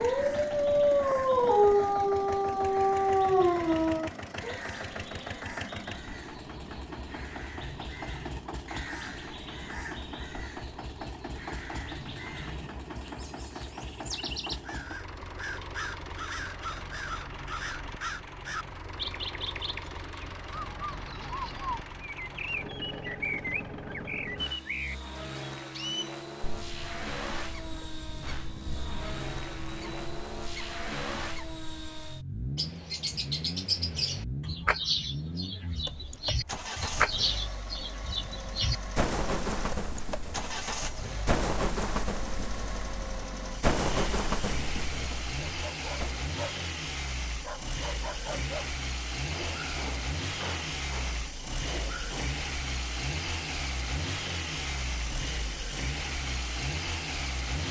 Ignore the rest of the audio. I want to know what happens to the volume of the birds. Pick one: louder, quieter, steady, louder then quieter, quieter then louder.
louder.